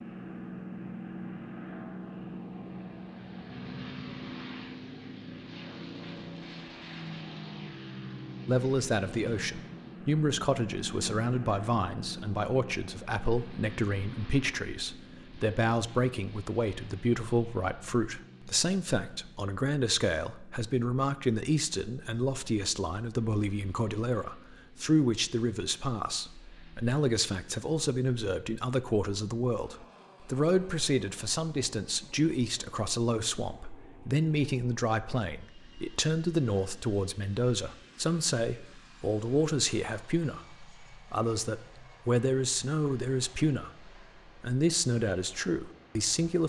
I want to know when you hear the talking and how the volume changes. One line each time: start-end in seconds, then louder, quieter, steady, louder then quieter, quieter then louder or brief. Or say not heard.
8.4-46.4 steady.